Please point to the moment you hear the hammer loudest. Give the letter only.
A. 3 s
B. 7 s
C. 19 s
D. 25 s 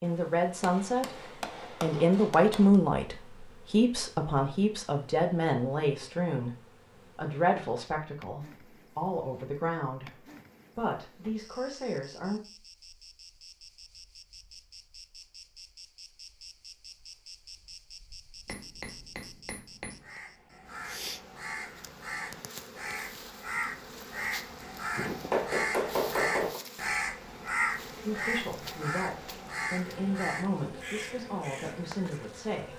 D.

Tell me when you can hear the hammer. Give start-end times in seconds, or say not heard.
0.6-2.8, 18.4-20.2, 24.9-26.6.